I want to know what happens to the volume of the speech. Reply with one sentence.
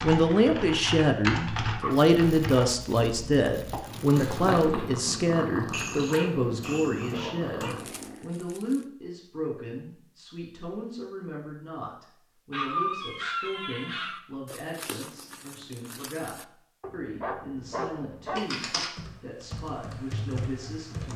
The loudness of the speech goes down.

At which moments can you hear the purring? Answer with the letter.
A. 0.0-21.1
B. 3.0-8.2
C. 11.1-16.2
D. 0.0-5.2
B.